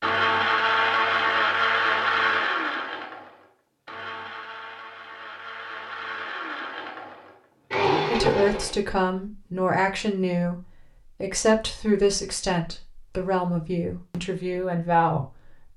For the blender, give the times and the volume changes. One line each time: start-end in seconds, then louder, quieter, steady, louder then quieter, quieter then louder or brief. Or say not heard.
0.0-8.8 quieter then louder.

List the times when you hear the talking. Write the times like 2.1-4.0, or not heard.
8.1-10.6, 11.2-15.7.